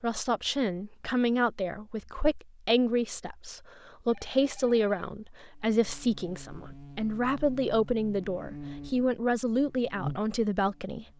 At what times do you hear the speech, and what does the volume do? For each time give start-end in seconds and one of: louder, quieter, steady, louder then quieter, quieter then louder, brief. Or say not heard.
0.0-11.1 steady.